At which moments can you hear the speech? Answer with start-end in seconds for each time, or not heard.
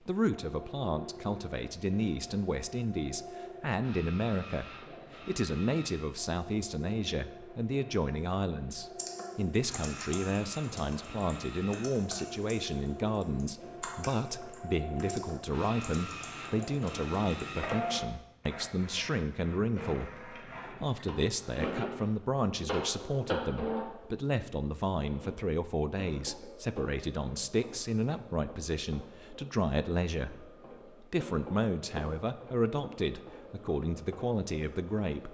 0.1-35.2.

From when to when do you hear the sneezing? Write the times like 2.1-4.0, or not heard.
not heard.